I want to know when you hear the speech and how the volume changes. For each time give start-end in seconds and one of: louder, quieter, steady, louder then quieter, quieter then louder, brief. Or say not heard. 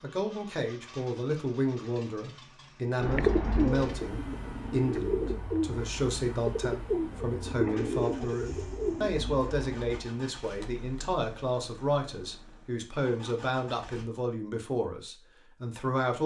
0.0-16.2 steady.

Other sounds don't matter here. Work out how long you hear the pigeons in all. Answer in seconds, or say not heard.
7 s.